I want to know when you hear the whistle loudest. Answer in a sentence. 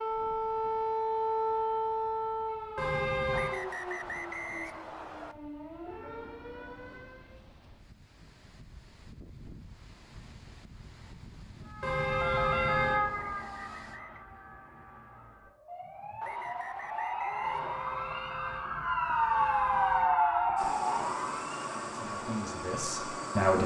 The loudest moment of the whistle is at 4 seconds.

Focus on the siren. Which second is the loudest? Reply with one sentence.
The volume of the siren peaks at 20 seconds.